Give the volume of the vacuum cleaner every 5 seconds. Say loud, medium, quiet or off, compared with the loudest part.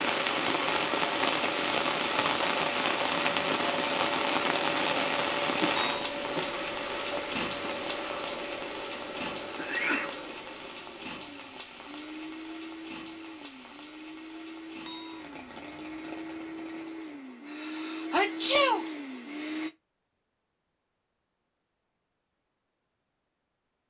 loud, loud, medium, loud, off.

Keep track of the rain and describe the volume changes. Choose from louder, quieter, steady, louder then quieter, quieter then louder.
quieter.